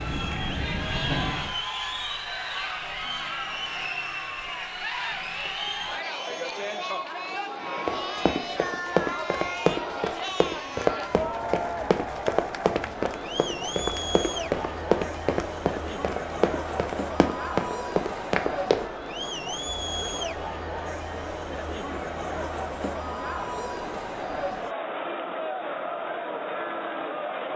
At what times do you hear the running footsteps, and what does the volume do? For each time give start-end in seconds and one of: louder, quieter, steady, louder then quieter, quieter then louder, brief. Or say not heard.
7.8-18.9 steady.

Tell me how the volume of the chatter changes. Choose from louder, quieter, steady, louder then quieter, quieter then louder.
steady.